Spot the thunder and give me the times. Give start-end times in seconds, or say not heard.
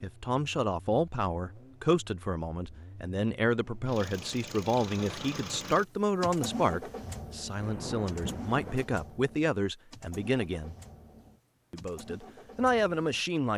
7.5-8.8.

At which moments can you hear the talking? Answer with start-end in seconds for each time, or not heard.
0.0-10.8, 11.7-13.5.